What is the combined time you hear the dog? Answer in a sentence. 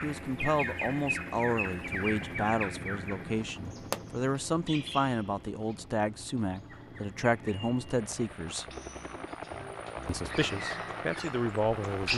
You can't hear the dog here.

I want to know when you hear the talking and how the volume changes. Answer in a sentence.
You can hear the talking from 0.0 to 8.7 s, at a steady volume; and briefly from 10.1 to 12.1 s.